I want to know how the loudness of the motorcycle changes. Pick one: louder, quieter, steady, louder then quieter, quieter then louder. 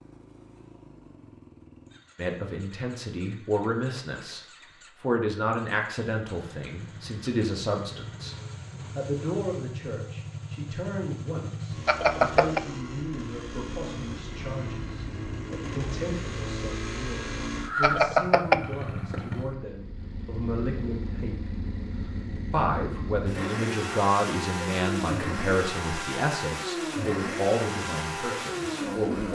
louder.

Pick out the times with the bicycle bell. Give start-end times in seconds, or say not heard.
11.8-12.6, 17.8-18.6.